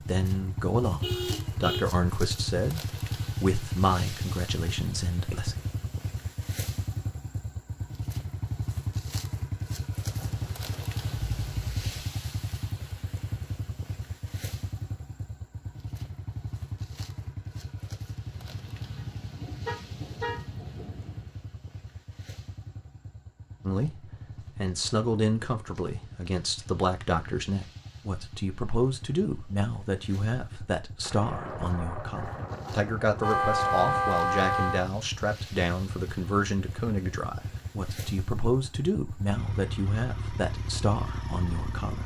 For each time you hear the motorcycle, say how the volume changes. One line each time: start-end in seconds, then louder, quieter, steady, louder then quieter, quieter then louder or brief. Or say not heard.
0.0-42.0 quieter then louder.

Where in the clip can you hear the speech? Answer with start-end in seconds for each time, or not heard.
0.0-5.5, 23.6-42.0.